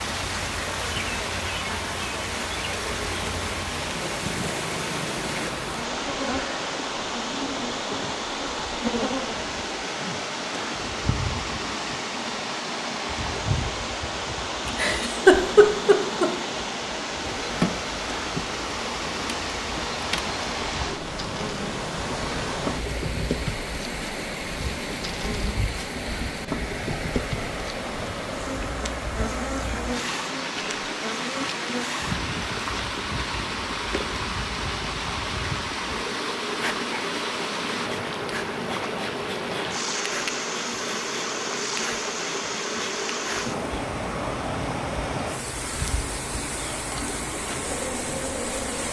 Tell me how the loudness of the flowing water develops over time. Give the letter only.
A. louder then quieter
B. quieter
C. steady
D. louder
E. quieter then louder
C.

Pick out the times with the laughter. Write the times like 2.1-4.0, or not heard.
14.7-16.3.